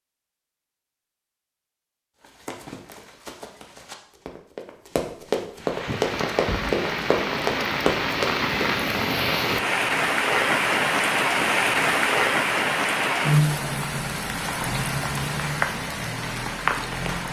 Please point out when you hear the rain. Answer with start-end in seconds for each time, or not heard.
5.5-17.2.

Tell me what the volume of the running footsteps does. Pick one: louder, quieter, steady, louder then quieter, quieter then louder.
louder.